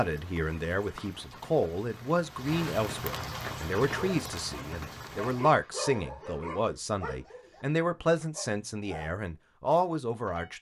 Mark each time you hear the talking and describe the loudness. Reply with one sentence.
The talking can be heard from 0.0 to 10.5 s, at a steady volume.